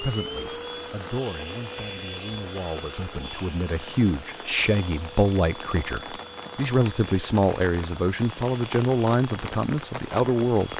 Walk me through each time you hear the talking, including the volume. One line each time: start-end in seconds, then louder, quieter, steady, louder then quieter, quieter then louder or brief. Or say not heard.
0.0-10.7 louder.